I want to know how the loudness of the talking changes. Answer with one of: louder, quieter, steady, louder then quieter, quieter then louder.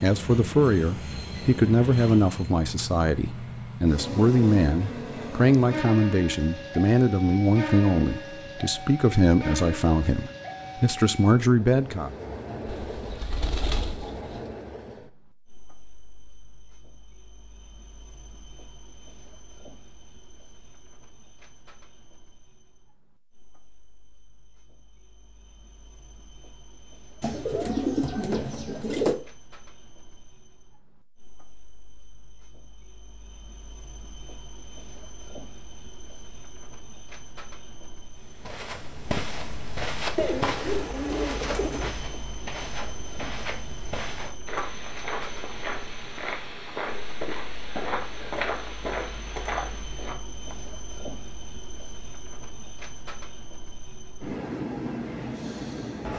steady.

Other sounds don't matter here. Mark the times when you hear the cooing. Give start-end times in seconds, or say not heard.
12.7-14.5, 27.2-29.1, 40.1-42.0.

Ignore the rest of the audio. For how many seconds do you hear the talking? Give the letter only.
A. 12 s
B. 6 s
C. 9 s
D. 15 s
A.